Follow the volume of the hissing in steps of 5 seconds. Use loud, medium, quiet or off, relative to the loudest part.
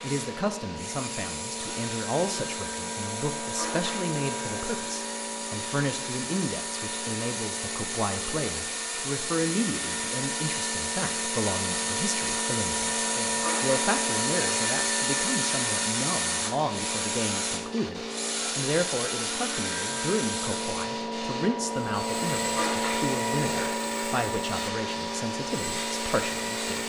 medium, medium, loud, medium, loud, loud.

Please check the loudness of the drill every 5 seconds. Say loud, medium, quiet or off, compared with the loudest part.
medium, medium, loud, loud, medium, medium.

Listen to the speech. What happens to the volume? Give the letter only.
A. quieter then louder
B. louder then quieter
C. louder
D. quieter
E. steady
E.